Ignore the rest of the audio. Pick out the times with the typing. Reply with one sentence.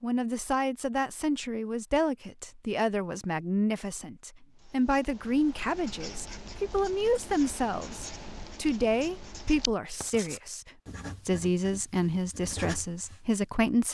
The typing can't be heard in this clip.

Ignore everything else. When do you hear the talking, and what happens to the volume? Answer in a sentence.
The talking can be heard from 0.0 to 13.8 s, at a steady volume.